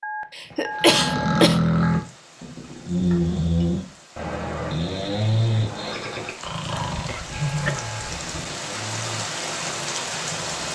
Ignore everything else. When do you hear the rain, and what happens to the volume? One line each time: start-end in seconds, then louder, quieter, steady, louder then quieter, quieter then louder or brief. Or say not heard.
1.7-10.7 louder.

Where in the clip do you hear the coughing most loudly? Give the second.
1 s.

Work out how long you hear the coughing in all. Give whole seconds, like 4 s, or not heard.
3 s.